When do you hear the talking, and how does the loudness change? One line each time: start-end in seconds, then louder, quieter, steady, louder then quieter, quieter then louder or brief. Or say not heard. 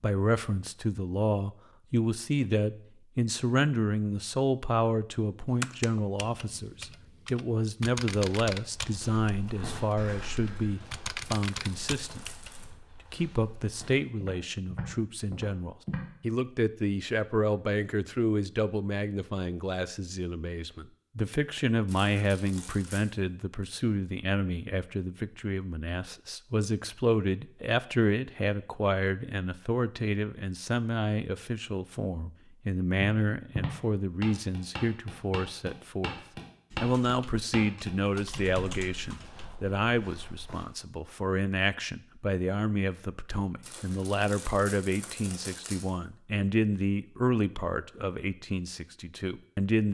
0.0-36.1 steady
36.8-49.8 steady.